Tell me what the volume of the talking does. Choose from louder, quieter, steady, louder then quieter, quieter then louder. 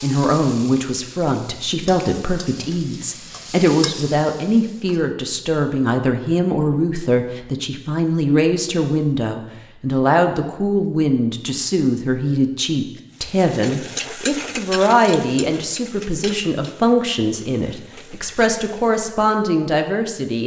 steady.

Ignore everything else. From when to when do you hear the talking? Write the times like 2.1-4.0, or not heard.
0.0-20.4.